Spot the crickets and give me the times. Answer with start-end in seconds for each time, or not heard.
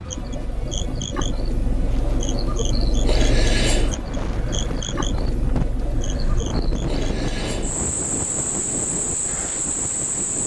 0.0-10.4.